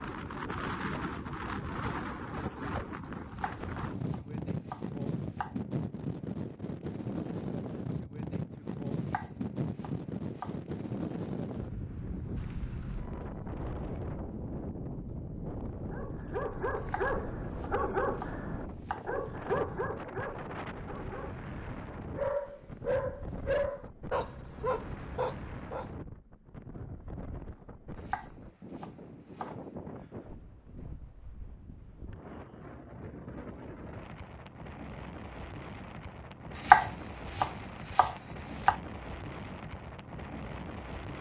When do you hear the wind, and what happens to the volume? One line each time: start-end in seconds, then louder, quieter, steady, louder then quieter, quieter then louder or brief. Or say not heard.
0.0-41.1 quieter.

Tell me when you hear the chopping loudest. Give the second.
37 s.